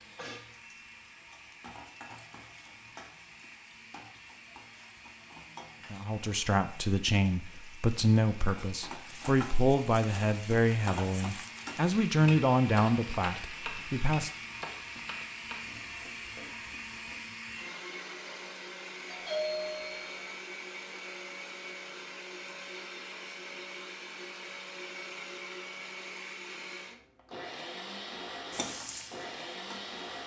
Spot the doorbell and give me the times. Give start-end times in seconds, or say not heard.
19.1-20.1.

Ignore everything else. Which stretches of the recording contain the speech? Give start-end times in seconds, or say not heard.
5.9-14.3.